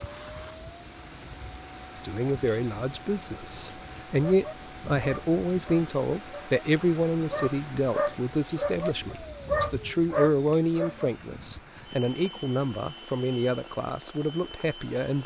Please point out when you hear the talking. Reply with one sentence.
You can hear the talking from 1.9 to 15.2 s.